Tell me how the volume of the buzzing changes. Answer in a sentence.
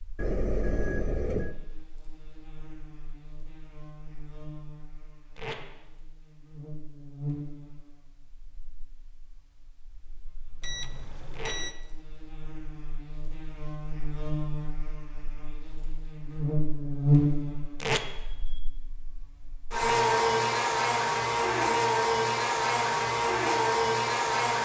The volume of the buzzing goes up.